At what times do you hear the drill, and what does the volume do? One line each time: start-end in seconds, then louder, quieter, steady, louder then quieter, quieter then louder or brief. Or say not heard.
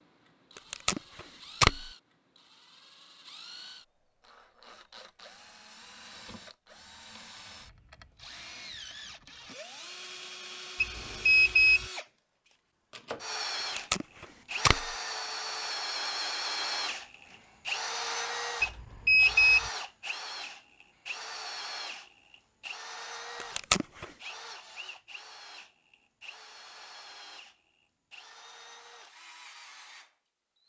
0.0-30.6 louder then quieter.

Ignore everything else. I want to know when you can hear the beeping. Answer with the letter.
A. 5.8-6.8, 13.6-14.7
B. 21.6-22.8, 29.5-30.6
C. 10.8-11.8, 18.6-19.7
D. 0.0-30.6
C.